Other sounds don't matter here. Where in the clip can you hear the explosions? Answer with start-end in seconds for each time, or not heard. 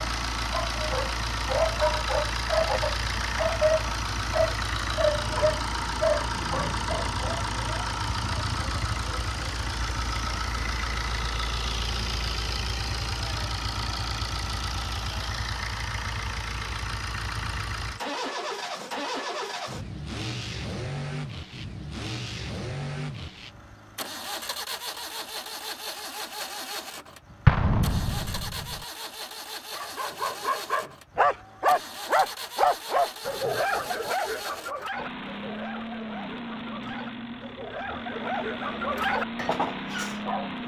27.4-28.8.